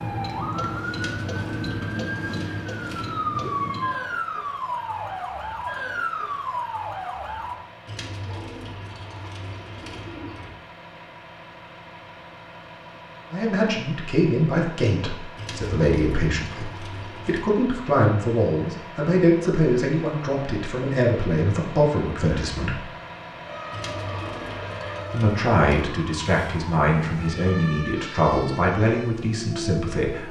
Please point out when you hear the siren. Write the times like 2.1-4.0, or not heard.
0.0-7.6, 23.4-30.2.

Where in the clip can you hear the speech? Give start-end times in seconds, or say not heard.
13.3-22.9, 25.1-30.2.